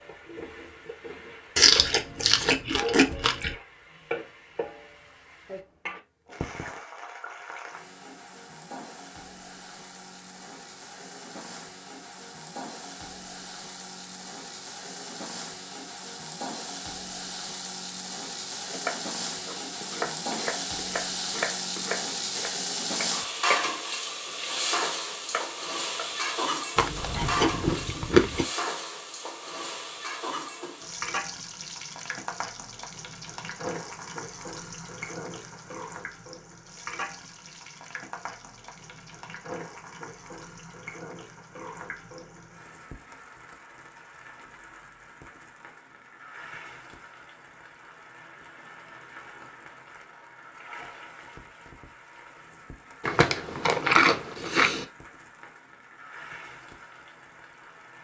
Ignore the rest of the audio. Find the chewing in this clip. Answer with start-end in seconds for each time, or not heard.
1.6-3.5, 26.8-28.4, 53.0-54.9.